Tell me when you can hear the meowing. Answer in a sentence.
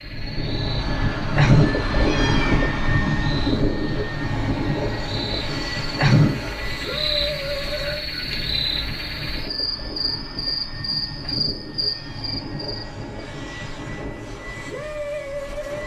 You can hear the meowing from 1.4 to 2.6 s, from 6.0 to 6.6 s and from 11.2 to 12.4 s.